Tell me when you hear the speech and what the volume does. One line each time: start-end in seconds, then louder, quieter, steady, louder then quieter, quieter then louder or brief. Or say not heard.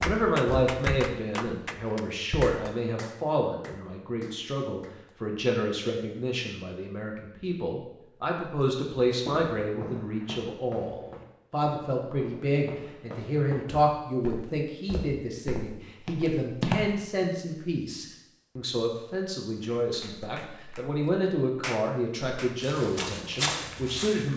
0.0-24.3 steady.